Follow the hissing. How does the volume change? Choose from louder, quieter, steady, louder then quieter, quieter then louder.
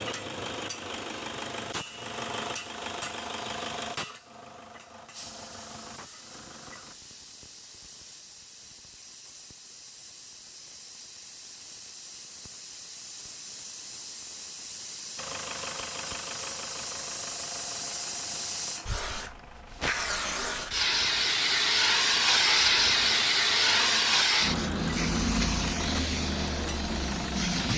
louder.